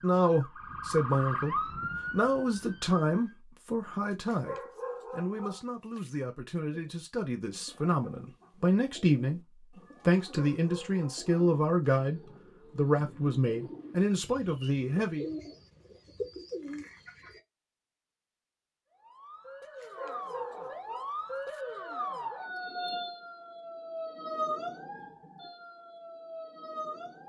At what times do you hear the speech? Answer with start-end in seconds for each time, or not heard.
0.0-15.3.